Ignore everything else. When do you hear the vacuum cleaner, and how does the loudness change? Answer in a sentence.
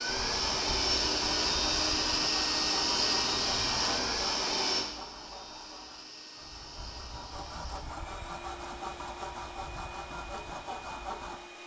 You can hear the vacuum cleaner from 0.0 to 11.6 s, getting quieter.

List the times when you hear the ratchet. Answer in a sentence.
The ratchet can't be heard in this clip.